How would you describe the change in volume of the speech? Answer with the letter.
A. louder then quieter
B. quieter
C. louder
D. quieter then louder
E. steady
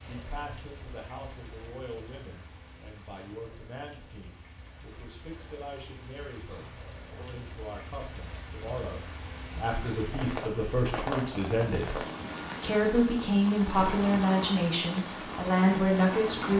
C.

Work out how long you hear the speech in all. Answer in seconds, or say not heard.
16 s.